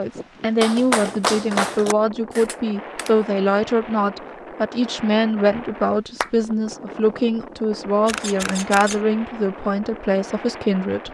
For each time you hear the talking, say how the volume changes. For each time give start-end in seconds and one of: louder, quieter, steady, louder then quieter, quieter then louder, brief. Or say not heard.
0.0-11.1 steady.